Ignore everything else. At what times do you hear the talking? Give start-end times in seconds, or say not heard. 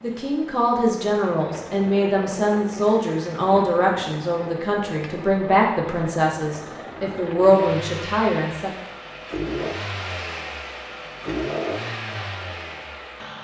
0.0-8.7.